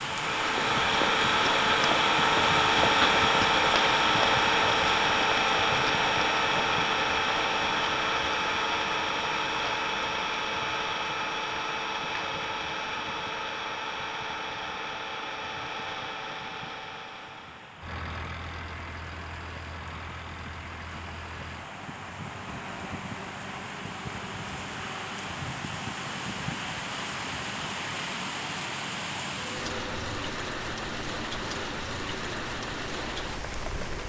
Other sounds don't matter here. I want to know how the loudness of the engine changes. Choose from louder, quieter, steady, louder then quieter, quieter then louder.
quieter.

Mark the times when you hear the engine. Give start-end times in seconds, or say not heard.
0.0-34.0.